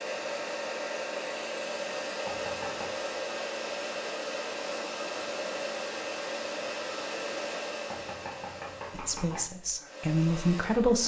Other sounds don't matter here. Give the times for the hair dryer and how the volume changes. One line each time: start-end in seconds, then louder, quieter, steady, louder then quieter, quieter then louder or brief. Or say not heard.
0.0-11.0 quieter.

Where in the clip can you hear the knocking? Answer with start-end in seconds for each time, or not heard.
2.2-2.9, 7.9-9.4.